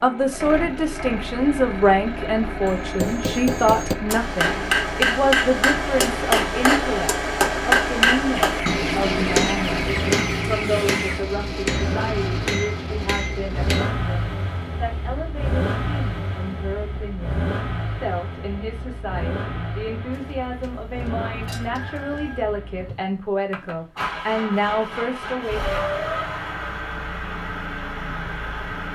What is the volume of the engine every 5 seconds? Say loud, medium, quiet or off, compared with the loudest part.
loud, loud, loud, loud, medium, loud.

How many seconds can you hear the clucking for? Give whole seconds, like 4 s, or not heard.
5 s.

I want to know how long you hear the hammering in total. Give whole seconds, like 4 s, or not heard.
11 s.